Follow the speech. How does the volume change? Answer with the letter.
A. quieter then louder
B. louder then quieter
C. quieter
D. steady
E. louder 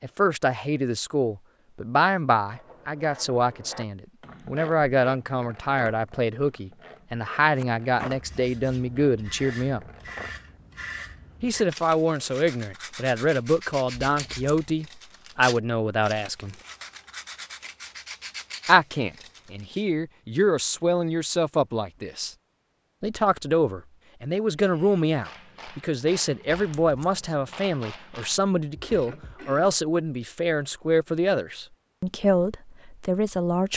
D.